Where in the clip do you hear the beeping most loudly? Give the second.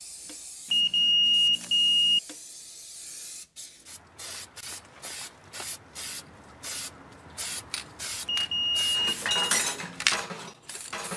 1 s.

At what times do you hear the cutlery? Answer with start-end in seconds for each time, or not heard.
8.9-11.1.